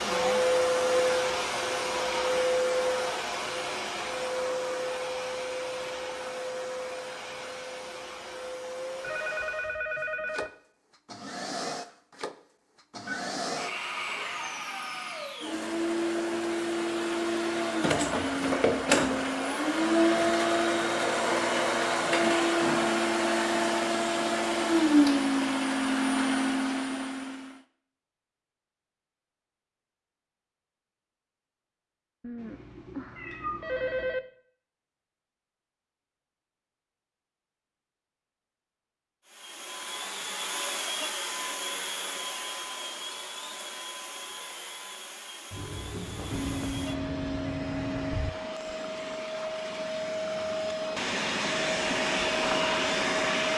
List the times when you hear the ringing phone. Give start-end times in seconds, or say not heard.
9.0-10.5, 32.2-34.2, 46.3-48.3.